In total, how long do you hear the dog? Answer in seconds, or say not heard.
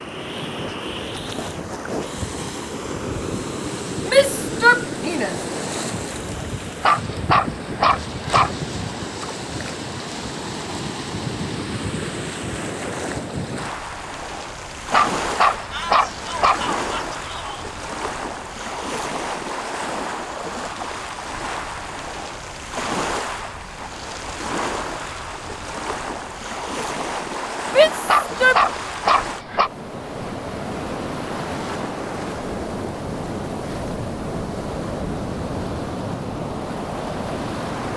5 s.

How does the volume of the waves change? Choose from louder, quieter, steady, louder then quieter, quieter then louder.
steady.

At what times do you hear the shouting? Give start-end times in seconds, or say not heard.
4.0-5.3, 15.7-17.7, 27.6-28.6.